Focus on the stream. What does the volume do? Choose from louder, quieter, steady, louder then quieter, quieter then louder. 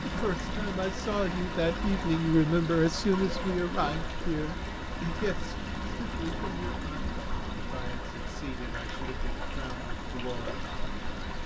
steady.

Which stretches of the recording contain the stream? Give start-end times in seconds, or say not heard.
0.0-11.4.